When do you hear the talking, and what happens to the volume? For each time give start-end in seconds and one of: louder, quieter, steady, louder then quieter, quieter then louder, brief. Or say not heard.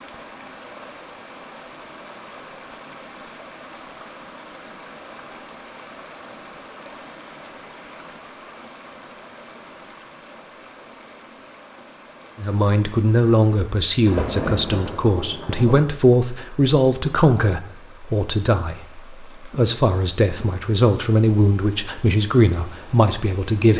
12.3-23.7 steady.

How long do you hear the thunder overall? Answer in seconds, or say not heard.
2 s.